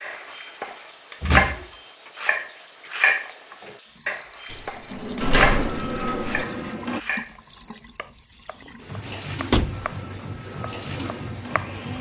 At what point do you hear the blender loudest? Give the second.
6 s.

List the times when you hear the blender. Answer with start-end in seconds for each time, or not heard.
5.2-7.0, 9.1-11.9.